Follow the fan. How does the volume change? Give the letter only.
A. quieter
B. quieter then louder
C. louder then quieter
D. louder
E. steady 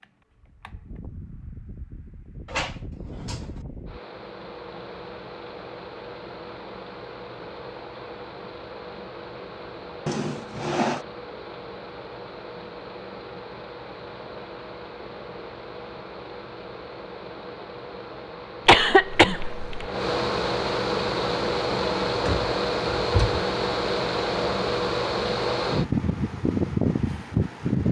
D.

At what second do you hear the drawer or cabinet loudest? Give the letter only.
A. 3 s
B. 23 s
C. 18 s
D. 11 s
D.